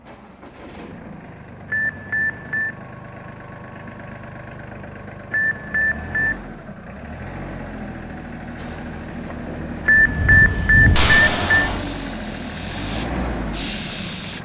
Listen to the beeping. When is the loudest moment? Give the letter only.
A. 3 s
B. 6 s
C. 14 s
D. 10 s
D.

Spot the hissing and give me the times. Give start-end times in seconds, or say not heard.
8.6-14.4.